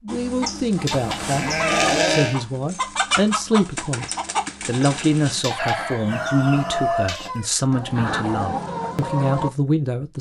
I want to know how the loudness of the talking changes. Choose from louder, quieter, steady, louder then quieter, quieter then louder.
steady.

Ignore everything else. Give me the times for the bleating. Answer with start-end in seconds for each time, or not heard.
0.9-2.4.